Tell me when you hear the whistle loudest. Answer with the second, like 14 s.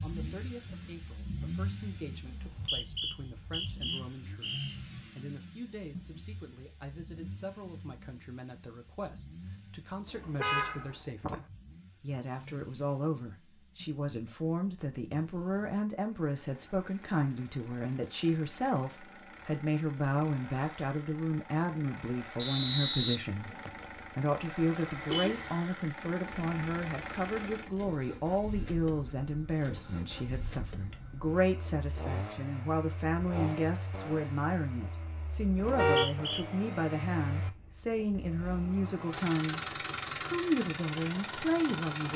23 s.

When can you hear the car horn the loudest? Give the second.
36 s.